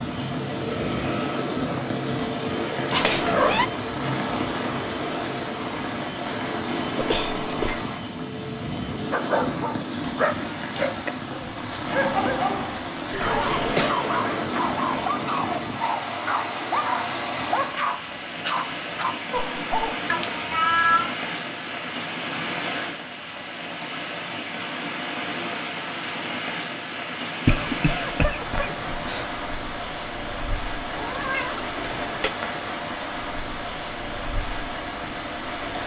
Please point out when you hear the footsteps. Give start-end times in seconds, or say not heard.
not heard.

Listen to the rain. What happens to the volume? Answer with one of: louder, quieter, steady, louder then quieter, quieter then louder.
steady.